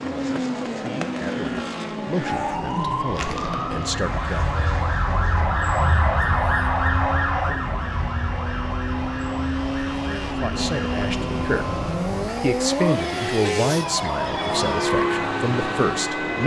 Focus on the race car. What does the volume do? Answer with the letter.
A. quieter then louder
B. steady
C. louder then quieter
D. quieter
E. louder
A.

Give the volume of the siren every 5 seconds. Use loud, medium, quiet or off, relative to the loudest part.
loud, loud, medium, medium.